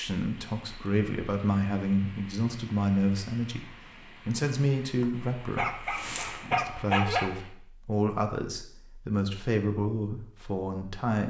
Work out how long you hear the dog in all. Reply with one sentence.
The dog can be heard for 2 seconds in total.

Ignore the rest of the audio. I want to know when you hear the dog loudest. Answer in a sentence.
The volume of the dog peaks at 7 seconds.